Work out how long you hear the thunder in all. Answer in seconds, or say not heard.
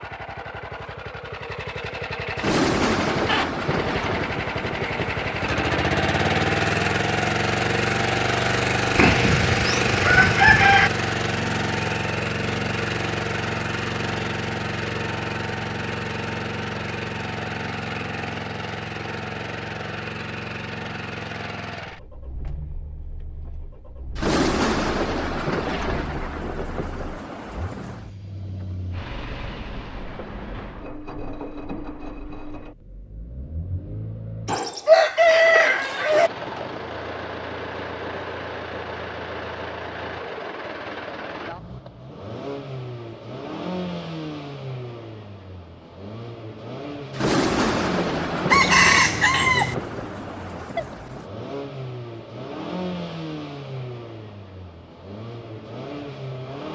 11 s.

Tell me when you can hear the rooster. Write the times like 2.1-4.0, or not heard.
8.9-10.9, 34.5-36.3, 48.5-49.8.